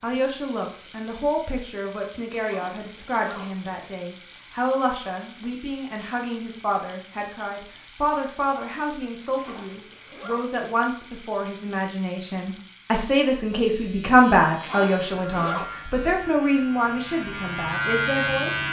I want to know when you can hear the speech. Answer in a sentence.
You can hear the speech from 0.0 to 18.6 s.